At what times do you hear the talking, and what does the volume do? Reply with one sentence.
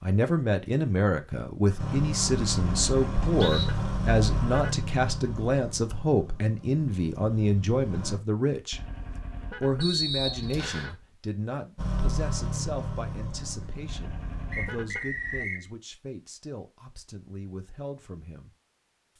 The talking can be heard from 0.0 to 18.6 s, getting quieter.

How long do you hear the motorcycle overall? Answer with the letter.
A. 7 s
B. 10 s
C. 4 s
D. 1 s
B.